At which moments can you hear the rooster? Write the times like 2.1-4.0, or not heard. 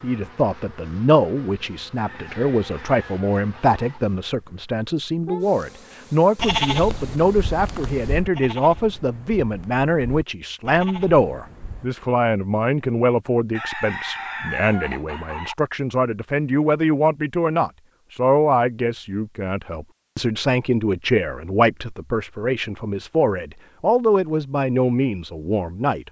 1.9-4.0, 13.6-15.6.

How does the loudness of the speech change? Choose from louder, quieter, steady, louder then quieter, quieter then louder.
steady.